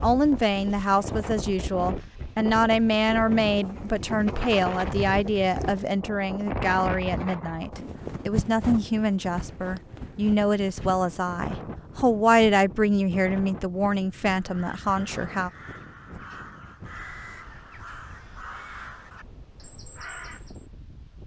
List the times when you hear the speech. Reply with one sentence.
The speech can be heard from 0.0 to 15.5 s.